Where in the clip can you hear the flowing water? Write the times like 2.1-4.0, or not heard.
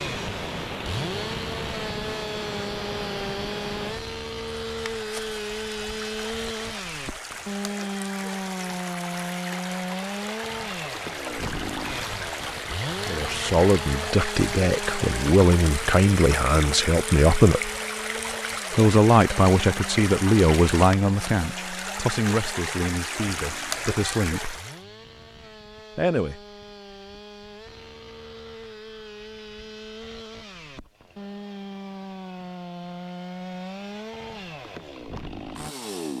0.0-24.9.